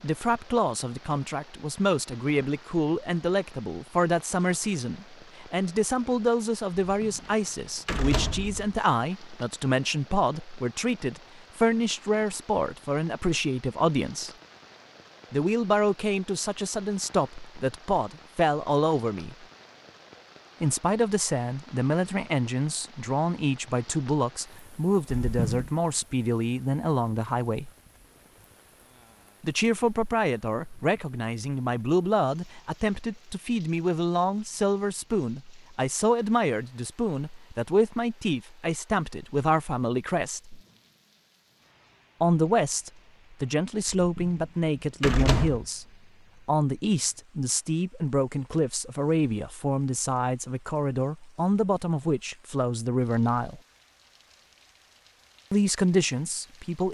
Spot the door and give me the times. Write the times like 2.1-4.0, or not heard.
6.9-8.8, 25.2-25.7, 43.9-45.6.